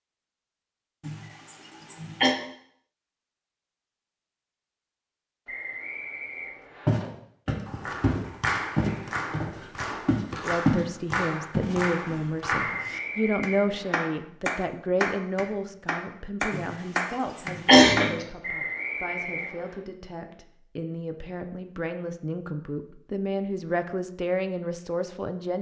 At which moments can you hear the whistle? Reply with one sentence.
The whistle can be heard from 5.5 to 7.0 s, from 12.6 to 14.1 s and from 18.4 to 19.8 s.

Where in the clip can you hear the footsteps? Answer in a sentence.
The footsteps can be heard from 6.8 to 10.8 s and from 11.5 to 12.7 s.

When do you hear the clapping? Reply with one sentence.
The clapping can be heard from 7.7 to 18.1 s.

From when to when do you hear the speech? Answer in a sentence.
You can hear the speech from 10.3 to 25.5 s.